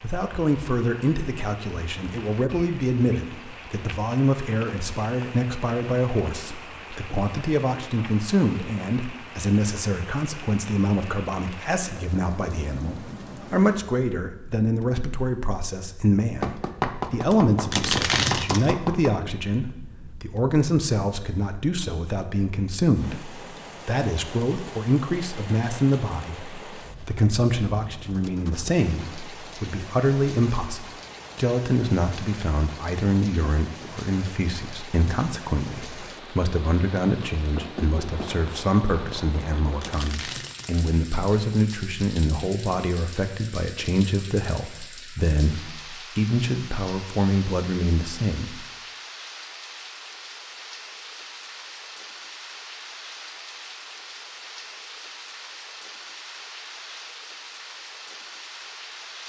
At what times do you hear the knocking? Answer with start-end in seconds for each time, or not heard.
16.4-19.1, 37.5-38.3.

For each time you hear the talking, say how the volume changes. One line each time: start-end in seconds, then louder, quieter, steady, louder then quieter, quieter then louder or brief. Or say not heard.
0.0-48.5 steady.